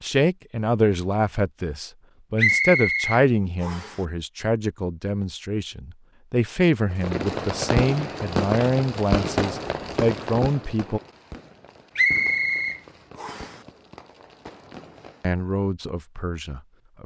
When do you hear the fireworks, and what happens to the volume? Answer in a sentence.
The fireworks can be heard from 6.9 to 15.4 s, getting quieter.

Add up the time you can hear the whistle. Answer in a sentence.
You can hear the whistle for 3 seconds altogether.